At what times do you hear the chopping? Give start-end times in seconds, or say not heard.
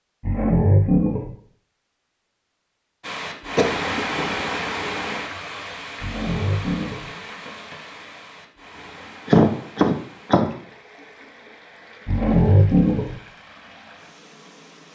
not heard.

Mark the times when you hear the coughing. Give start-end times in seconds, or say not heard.
3.5-4.3, 9.2-10.5.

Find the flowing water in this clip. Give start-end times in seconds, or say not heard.
3.0-14.9.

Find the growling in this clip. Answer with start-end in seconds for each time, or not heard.
0.2-1.3, 6.0-7.0, 12.1-13.2.